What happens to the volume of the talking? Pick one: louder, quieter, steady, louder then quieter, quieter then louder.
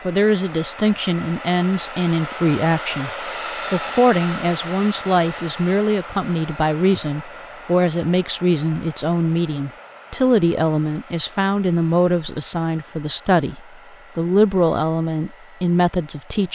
steady.